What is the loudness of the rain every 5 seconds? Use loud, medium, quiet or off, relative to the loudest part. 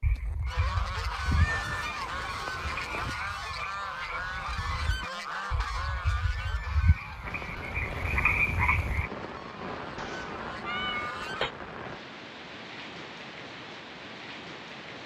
off, loud, loud.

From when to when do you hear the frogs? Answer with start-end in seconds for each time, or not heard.
0.0-9.1.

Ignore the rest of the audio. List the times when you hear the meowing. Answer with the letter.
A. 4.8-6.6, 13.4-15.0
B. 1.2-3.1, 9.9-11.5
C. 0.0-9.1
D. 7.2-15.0
B.